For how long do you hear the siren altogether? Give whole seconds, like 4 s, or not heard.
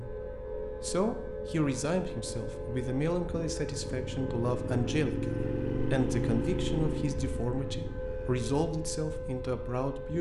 10 s.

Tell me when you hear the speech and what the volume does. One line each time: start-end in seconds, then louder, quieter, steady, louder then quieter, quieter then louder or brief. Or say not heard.
0.0-10.1 steady.